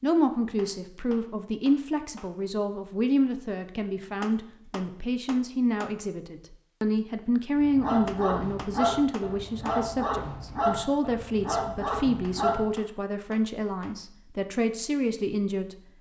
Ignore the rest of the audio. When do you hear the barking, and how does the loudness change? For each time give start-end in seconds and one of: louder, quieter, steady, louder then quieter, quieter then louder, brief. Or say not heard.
7.5-12.7 steady.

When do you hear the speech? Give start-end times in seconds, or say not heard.
0.0-15.8.